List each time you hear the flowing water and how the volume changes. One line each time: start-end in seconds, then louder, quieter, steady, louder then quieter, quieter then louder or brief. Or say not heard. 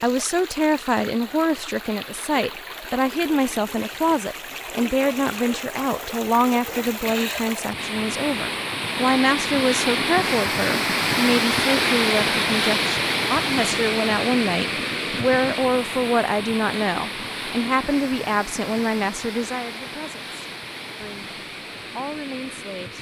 0.0-22.9 louder then quieter.